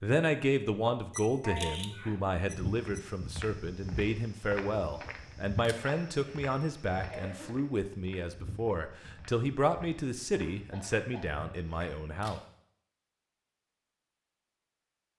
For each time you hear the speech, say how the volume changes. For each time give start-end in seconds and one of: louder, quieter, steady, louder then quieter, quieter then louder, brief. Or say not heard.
0.0-12.4 steady.